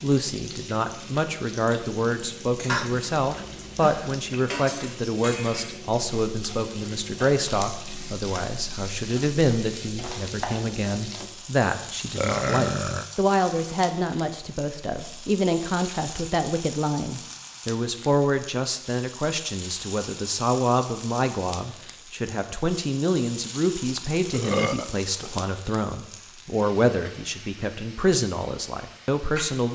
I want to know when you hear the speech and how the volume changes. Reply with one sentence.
The speech can be heard from 0.0 to 29.7 s, at a steady volume.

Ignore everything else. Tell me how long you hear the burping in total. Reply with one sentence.
You can hear the burping for 4 seconds altogether.